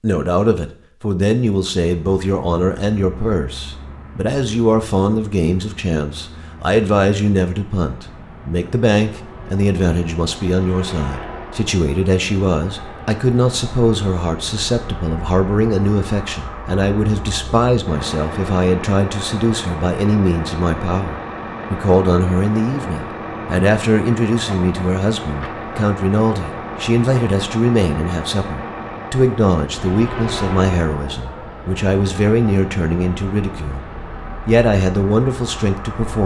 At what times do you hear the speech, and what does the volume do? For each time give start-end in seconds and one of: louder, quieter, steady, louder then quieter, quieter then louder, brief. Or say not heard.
0.0-33.9 steady
34.5-36.2 brief.